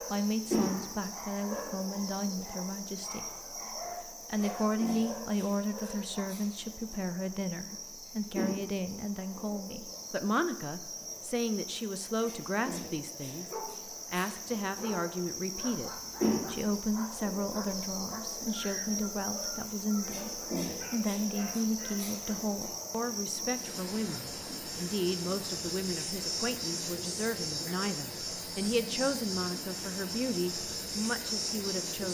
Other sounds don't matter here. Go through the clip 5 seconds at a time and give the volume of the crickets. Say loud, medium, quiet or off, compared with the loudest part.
loud, medium, medium, loud, loud, loud, loud.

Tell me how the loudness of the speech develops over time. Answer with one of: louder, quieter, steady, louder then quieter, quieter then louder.
steady.